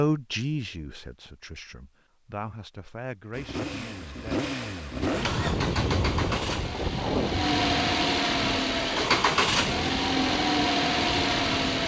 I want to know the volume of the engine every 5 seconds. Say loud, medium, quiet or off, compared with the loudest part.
medium, loud, loud.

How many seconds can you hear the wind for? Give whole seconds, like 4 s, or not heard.
7 s.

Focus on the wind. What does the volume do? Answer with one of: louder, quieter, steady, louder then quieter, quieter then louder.
quieter.